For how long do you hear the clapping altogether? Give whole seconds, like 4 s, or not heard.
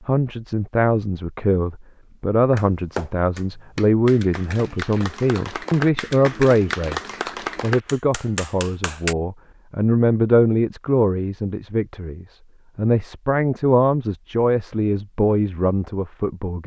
7 s.